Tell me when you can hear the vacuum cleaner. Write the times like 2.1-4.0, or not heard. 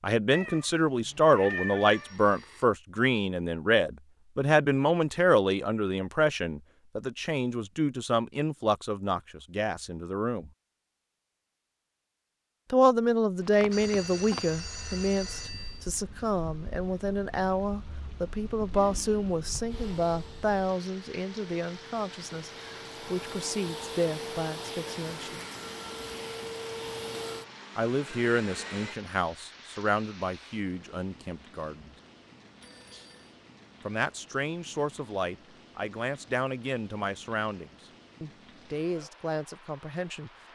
18.7-29.0.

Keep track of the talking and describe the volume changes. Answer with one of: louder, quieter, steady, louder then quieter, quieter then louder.
quieter.